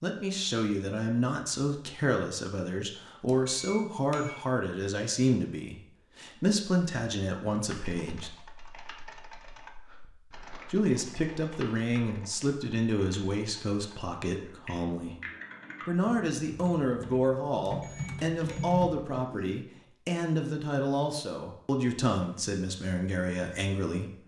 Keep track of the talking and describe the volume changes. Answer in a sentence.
The volume of the talking stays about the same.